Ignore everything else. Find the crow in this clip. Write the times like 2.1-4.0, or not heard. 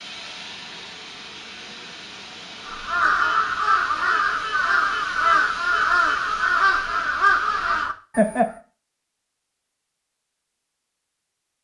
2.6-8.6.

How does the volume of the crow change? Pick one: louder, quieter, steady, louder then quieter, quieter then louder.
steady.